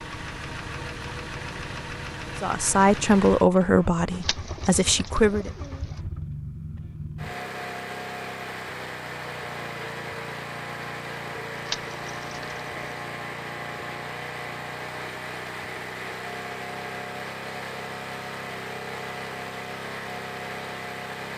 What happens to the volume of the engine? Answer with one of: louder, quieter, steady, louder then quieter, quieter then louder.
steady.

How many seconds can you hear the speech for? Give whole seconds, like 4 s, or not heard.
3 s.